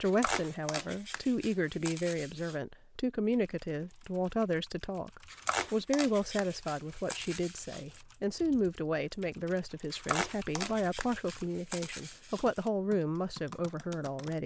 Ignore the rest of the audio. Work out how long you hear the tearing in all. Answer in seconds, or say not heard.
8 s.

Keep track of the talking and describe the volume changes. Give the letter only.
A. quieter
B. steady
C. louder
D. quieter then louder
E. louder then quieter
B.